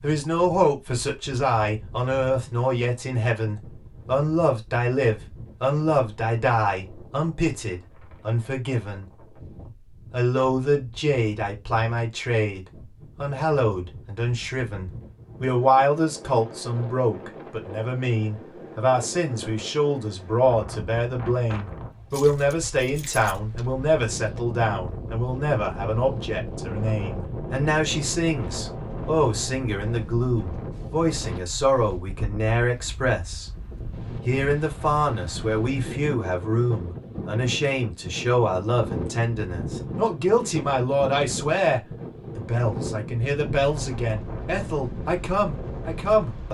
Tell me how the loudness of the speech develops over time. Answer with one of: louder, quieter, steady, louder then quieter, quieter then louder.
steady.